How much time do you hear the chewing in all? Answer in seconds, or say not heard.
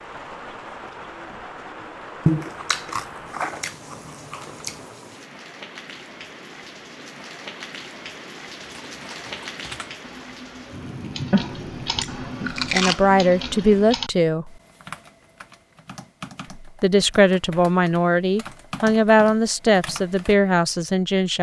4 s.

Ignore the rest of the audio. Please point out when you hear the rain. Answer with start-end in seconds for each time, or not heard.
0.0-13.9.